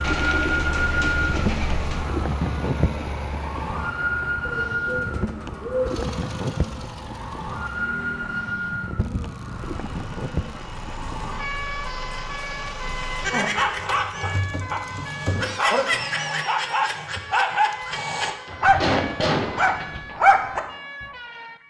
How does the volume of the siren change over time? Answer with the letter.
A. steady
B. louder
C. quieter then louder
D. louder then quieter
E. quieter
E.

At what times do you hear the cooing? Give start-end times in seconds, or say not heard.
0.0-2.0, 4.4-6.2, 8.9-11.2, 13.2-15.6, 18.4-20.2.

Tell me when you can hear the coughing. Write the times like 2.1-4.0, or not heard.
18.4-19.4.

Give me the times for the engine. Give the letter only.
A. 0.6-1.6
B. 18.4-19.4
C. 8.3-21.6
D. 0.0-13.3
D.